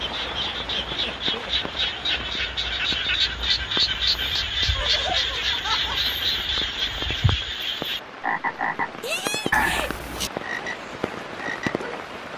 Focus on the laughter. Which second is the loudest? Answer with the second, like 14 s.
10 s.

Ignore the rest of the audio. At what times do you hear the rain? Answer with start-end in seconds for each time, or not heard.
0.0-12.3.